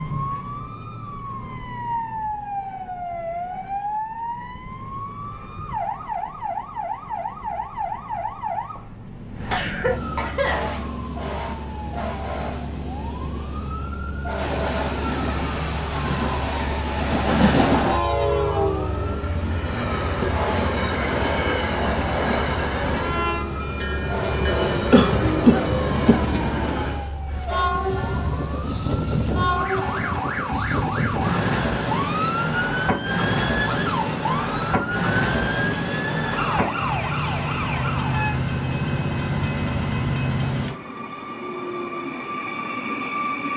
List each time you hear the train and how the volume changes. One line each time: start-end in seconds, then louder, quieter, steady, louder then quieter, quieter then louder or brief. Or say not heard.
14.3-43.5 steady.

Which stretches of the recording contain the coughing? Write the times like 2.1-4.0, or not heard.
9.4-10.7, 24.9-26.2.